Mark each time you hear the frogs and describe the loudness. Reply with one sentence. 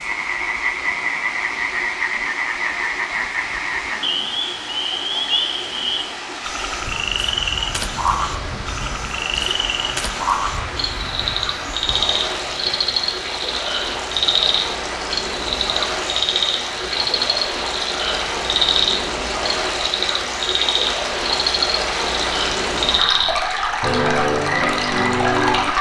You can hear the frogs from 0.0 to 25.7 s, at a steady volume.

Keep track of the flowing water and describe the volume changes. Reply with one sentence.
The volume of the flowing water goes up.